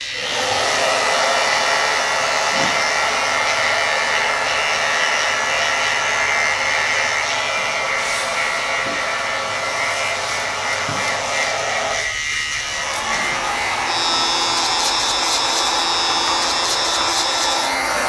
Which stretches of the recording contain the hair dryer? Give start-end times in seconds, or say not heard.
0.0-18.0.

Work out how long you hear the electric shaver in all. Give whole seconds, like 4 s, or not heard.
18 s.